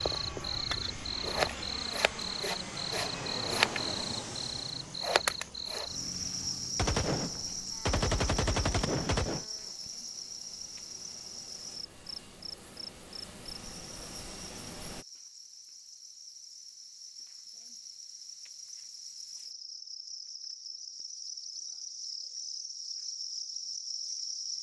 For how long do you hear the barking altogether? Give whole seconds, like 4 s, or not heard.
not heard.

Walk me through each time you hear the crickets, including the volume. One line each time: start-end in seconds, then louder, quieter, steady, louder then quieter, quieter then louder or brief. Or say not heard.
0.0-24.5 quieter then louder.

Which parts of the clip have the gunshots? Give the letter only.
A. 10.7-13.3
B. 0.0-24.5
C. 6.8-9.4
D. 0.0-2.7
C.